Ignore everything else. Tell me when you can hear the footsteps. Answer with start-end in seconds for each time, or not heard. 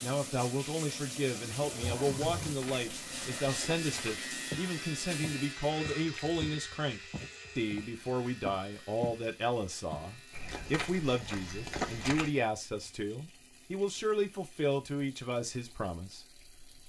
1.8-9.2, 9.9-12.3.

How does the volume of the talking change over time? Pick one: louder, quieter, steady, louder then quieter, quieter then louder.
steady.